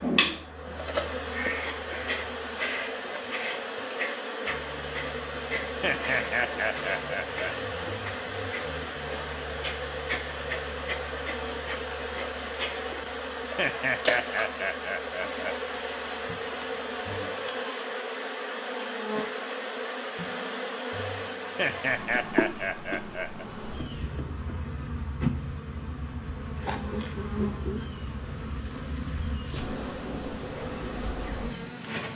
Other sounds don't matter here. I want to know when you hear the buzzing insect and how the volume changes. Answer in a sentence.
The buzzing insect can be heard from 0.0 to 32.1 s, at a steady volume.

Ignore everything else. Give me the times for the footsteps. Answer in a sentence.
You can't hear the footsteps here.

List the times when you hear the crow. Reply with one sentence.
The crow can be heard from 0.0 to 2.2 s.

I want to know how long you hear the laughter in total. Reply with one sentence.
The laughter can be heard for 6 seconds in total.